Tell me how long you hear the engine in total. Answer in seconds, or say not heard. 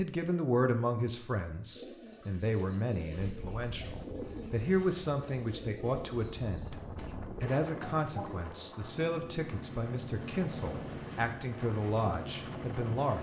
4 s.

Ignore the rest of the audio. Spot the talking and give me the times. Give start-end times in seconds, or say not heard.
0.0-6.8, 7.4-13.1.